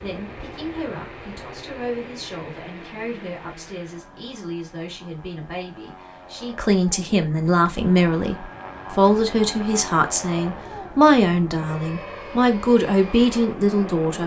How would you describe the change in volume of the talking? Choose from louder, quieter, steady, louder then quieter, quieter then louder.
louder.